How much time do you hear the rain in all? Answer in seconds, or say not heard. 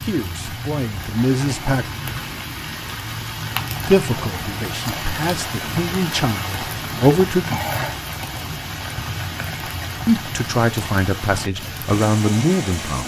13 s.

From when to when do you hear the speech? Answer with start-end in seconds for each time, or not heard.
0.0-1.9, 3.9-7.5, 10.1-13.0.